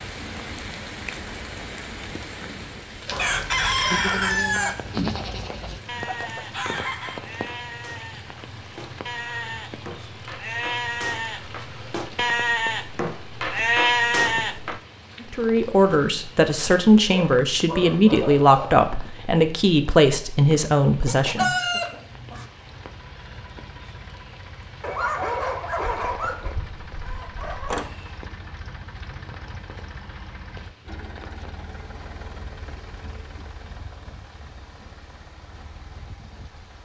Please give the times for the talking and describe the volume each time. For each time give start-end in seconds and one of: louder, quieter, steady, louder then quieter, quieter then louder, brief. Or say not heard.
15.2-21.8 steady.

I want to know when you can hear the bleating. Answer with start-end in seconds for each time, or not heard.
3.0-14.8.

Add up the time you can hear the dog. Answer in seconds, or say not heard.
5 s.